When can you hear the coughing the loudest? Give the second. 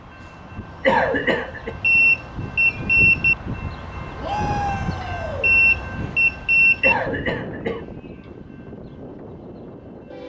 1 s.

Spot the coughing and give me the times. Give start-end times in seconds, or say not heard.
0.8-1.8, 6.8-7.8.